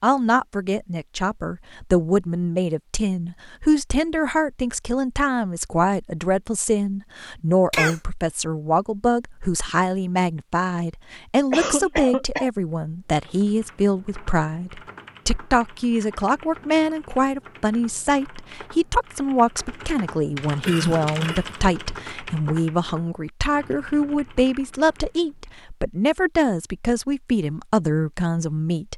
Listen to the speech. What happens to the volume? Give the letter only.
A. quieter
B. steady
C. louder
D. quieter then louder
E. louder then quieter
B.